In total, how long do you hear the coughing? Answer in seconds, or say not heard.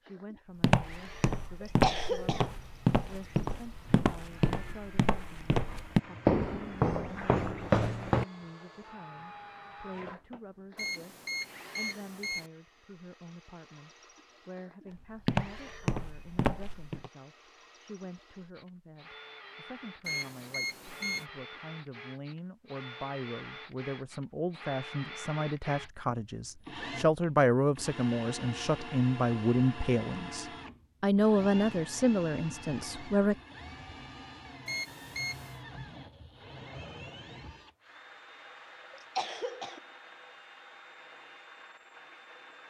2 s.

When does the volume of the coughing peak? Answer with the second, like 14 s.
2 s.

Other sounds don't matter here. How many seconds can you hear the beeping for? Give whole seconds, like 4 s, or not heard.
4 s.